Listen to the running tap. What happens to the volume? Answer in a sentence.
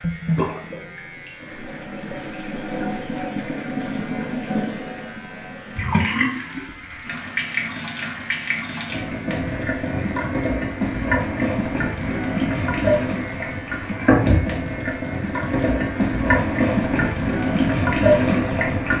The loudness of the running tap goes up.